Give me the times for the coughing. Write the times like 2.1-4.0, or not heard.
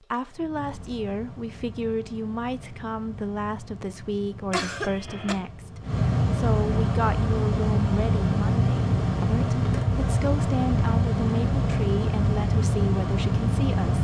4.5-5.3.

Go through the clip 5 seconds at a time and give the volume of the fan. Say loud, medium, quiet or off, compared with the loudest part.
quiet, loud, loud.